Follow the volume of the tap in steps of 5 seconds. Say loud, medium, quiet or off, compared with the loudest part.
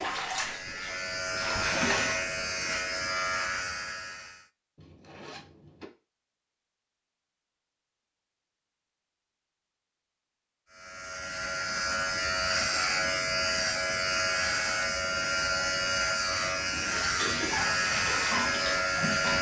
loud, off, off, loud.